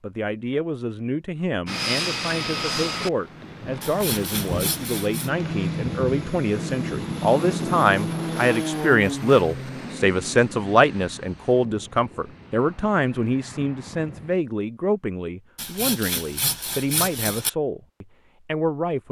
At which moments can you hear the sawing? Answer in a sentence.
You can hear the sawing from 3.8 to 5.3 s and from 15.6 to 17.5 s.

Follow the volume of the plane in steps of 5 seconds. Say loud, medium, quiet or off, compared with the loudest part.
loud, loud, quiet, off.